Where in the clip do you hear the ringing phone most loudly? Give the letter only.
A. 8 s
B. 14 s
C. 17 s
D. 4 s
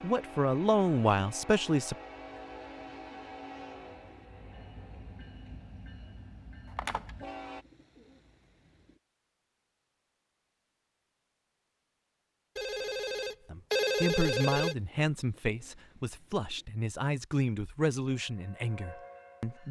B.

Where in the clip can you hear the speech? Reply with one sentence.
You can hear the speech from 0.0 to 1.9 s and from 13.4 to 19.6 s.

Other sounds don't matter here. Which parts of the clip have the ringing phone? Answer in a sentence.
You can hear the ringing phone from 6.8 to 7.2 s and from 12.6 to 14.8 s.